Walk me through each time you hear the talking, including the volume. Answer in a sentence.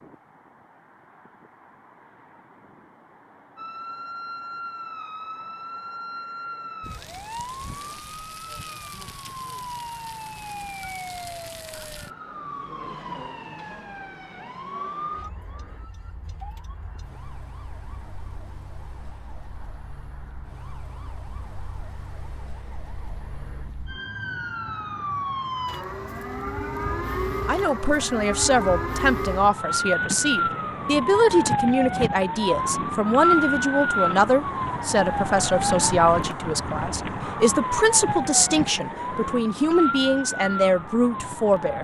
The talking can be heard from 27.4 to 41.7 s, at a steady volume.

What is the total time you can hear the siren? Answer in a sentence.
You can hear the siren for 38 seconds altogether.